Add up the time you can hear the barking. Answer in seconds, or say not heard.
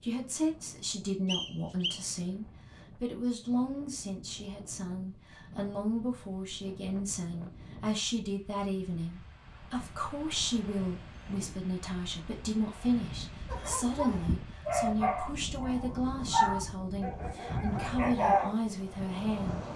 5 s.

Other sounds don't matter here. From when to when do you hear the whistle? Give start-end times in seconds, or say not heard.
1.2-2.0.